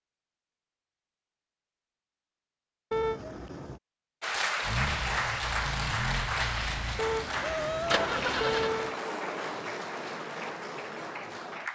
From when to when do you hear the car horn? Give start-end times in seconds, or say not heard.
2.9-3.8, 7.0-9.0.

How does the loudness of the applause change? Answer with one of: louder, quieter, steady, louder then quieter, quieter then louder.
quieter.